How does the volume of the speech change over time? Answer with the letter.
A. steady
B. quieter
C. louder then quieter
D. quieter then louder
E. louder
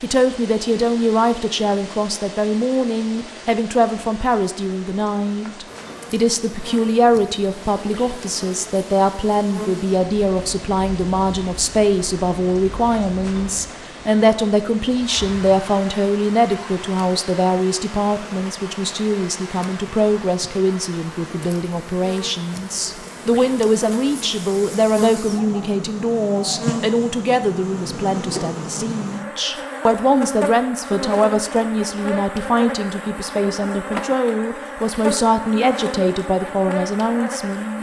A.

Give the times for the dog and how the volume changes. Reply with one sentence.
You can't hear the dog here.